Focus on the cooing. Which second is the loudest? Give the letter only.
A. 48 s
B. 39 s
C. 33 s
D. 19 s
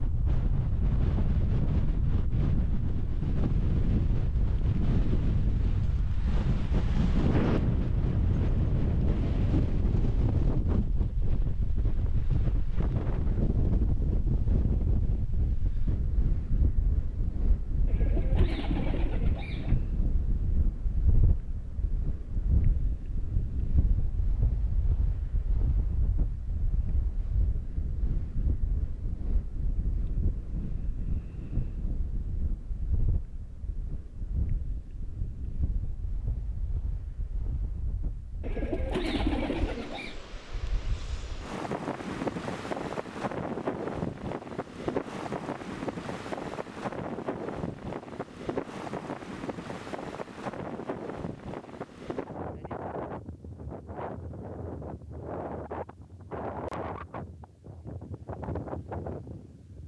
B.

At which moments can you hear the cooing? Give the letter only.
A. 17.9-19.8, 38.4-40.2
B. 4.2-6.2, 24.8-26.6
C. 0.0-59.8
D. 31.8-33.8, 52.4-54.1
A.